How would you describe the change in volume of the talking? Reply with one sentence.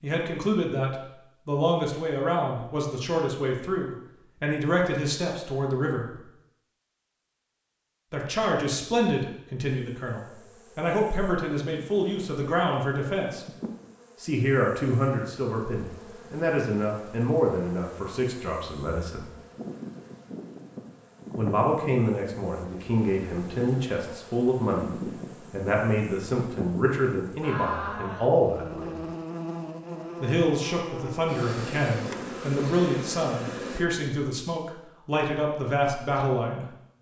The volume of the talking stays about the same.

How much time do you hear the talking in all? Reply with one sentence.
The talking can be heard for 31 seconds in total.